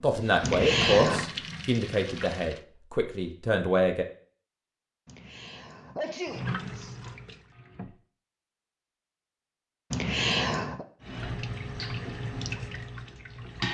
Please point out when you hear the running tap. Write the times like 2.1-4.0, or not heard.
0.0-2.6, 6.2-8.1, 11.0-13.6.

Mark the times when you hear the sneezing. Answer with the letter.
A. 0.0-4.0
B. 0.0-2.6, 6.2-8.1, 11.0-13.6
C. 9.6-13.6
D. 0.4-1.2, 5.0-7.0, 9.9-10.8
D.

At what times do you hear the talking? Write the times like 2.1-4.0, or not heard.
0.0-4.0.